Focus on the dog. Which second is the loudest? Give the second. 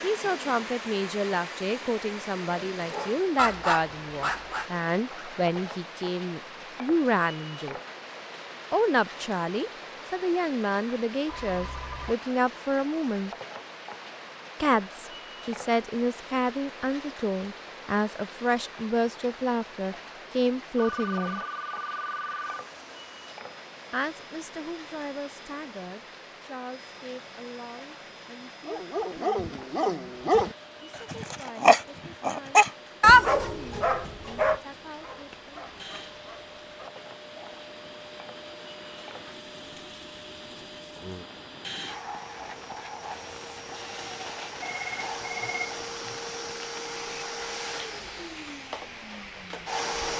33 s.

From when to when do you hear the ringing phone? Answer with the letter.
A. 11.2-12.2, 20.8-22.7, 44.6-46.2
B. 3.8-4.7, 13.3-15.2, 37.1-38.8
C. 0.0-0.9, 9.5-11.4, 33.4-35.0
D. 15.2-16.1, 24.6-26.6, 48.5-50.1
A.